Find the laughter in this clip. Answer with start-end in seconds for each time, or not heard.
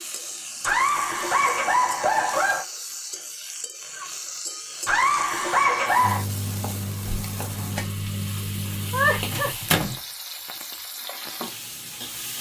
0.7-2.6, 4.8-6.2, 8.9-9.5.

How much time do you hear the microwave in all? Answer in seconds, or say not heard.
4 s.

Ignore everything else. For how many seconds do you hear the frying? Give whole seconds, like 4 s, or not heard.
12 s.